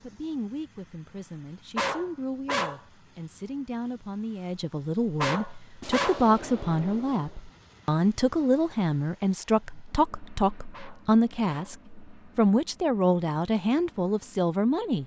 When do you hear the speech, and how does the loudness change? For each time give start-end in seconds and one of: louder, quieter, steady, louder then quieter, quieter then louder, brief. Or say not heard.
0.0-15.0 louder.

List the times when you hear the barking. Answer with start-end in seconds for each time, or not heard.
1.8-2.8, 5.2-6.2, 10.7-11.8.